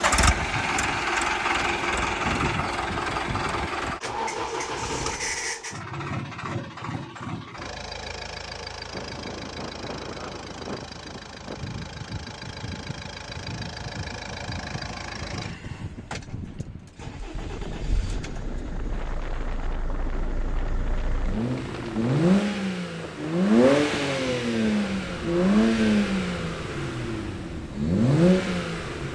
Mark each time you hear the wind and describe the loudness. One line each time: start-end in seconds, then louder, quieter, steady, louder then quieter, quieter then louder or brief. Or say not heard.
8.9-29.1 steady.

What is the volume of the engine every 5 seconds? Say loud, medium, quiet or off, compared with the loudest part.
loud, medium, quiet, quiet, loud, loud.